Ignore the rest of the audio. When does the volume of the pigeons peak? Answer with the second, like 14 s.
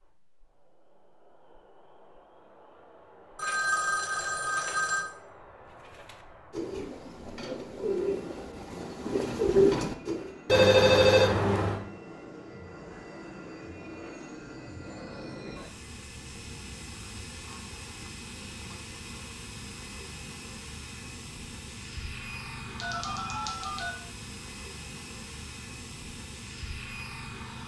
10 s.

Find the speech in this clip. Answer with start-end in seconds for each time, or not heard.
not heard.